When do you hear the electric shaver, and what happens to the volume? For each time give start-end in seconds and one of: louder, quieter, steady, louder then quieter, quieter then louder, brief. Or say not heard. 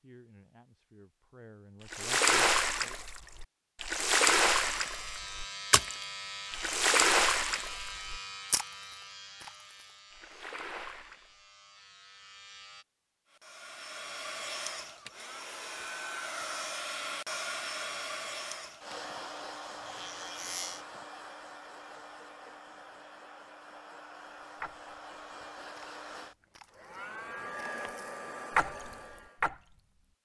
4.5-12.8 quieter
18.9-21.1 brief.